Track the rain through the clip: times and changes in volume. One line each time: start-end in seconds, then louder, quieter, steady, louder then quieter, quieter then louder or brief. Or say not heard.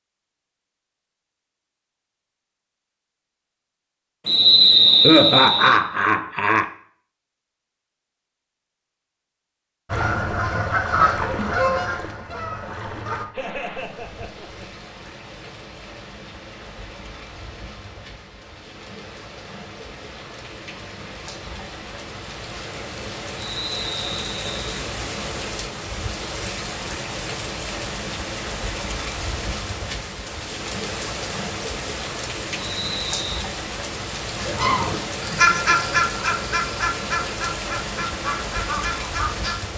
13.3-39.7 louder.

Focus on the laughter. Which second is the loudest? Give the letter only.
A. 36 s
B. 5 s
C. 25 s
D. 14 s
B.